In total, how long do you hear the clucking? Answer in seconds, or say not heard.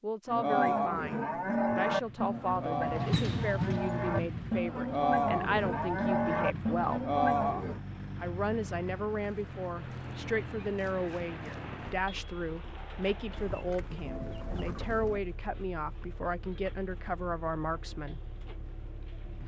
2 s.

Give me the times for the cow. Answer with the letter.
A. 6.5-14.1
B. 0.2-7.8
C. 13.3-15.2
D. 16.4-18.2
B.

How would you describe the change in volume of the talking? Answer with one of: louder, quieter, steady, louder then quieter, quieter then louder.
steady.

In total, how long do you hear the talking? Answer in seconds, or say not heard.
17 s.